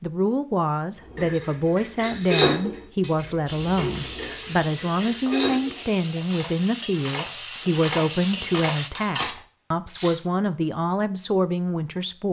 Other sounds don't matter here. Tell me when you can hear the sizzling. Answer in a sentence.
The sizzling can be heard from 3.5 to 8.9 s.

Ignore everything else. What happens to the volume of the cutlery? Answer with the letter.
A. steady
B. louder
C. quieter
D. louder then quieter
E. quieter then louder
E.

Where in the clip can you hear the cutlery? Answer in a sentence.
The cutlery can be heard from 1.1 to 10.2 s.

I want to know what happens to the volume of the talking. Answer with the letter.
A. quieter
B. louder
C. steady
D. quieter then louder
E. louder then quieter
C.